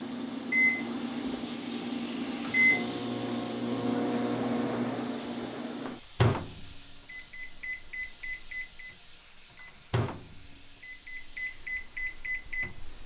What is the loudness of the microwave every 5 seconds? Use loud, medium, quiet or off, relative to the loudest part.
loud, medium, medium.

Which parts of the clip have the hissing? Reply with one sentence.
The hissing can be heard from 0.0 to 13.0 s.